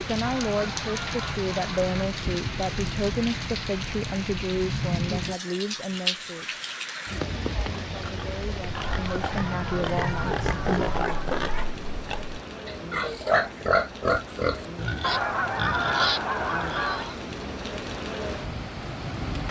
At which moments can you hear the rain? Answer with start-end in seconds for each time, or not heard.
0.0-19.4.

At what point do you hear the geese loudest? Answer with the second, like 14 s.
16 s.